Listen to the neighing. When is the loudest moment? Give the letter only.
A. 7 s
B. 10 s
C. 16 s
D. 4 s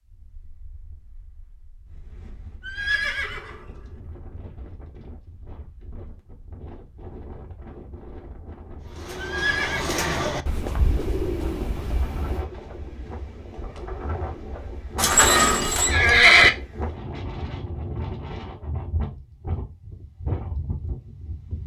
C.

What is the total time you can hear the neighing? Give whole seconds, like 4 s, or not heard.
3 s.